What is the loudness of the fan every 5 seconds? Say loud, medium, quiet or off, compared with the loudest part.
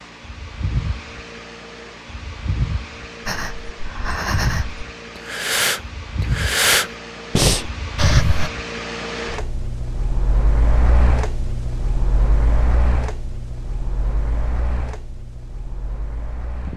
loud, loud, loud, medium.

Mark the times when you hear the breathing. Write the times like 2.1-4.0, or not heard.
3.2-8.5.